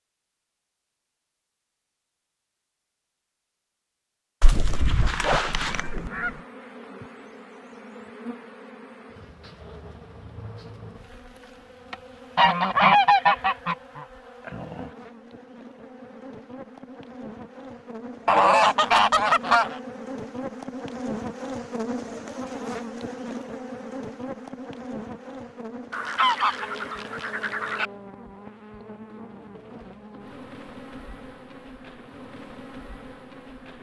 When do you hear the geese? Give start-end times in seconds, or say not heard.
4.4-6.3, 12.3-14.1, 18.2-19.8, 25.9-27.9.